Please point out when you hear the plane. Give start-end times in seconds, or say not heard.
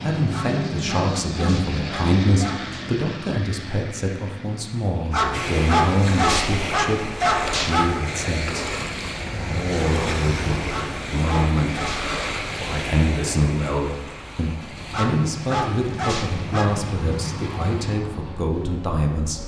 0.0-5.2, 14.6-19.4.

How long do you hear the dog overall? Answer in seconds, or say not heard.
9 s.